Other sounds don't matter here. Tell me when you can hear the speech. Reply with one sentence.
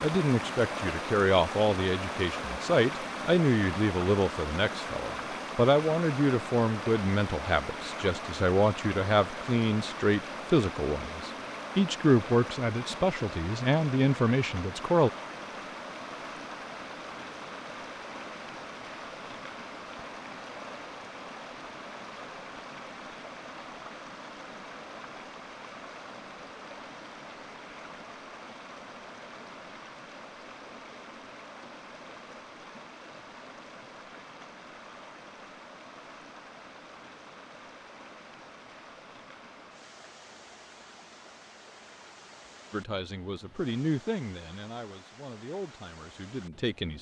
The speech can be heard from 0.0 to 15.1 s and from 42.7 to 46.9 s.